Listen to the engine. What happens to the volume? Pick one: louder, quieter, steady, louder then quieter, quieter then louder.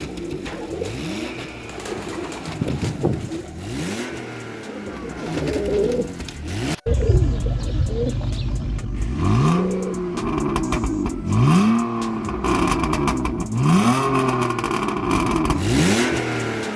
louder.